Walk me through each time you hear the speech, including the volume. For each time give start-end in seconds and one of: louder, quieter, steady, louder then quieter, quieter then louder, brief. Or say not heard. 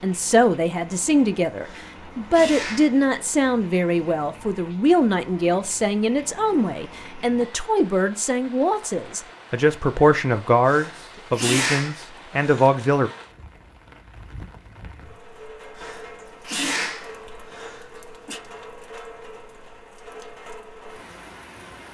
0.0-13.1 steady.